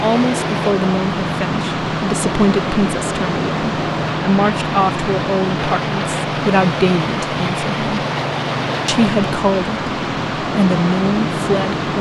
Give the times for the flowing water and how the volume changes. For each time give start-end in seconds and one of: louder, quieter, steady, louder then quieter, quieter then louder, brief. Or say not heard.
0.0-11.9 steady.